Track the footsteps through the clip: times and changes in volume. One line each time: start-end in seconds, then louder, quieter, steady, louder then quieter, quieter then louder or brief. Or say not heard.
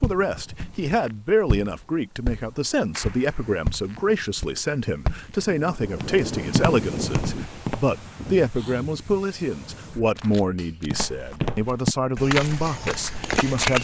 0.0-7.8 louder
10.8-13.7 brief.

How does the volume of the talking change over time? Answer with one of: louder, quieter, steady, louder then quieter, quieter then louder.
steady.